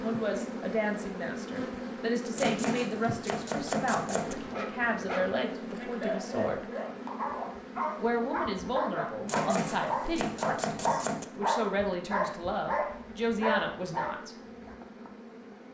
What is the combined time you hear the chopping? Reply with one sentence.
You can hear the chopping for 4 seconds altogether.